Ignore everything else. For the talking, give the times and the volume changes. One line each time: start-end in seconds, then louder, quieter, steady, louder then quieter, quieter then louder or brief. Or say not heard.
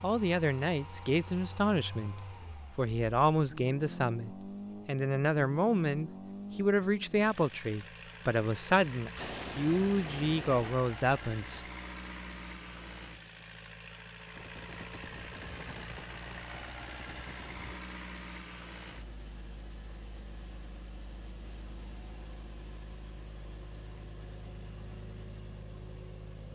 0.0-11.7 steady.